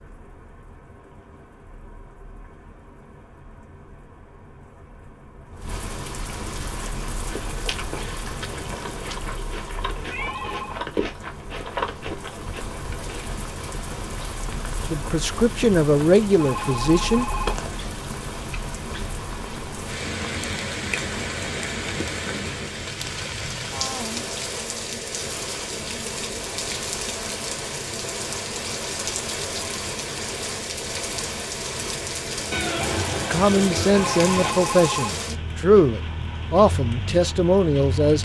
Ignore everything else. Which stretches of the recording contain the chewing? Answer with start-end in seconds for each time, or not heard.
6.8-13.2.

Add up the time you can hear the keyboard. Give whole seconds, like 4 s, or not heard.
not heard.